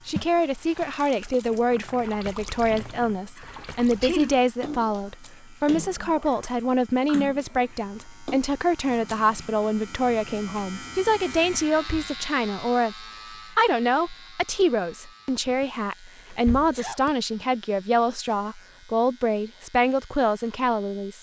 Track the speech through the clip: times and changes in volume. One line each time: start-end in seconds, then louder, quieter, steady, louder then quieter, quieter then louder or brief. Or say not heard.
0.1-21.1 steady.